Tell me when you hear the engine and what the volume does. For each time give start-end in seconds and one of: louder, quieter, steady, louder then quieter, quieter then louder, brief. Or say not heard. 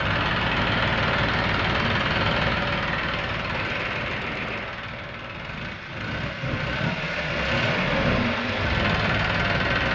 0.0-9.9 quieter then louder.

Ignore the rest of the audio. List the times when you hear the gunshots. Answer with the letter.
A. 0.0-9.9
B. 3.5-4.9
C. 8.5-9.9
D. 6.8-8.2
B.